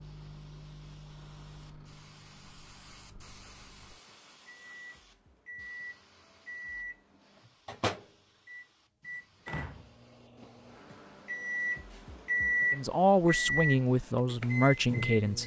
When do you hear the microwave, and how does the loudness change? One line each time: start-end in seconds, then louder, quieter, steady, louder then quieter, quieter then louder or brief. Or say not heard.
0.0-15.4 louder.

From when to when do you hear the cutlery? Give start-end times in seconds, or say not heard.
not heard.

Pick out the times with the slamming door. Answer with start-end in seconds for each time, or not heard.
9.4-9.9.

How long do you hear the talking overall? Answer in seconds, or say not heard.
3 s.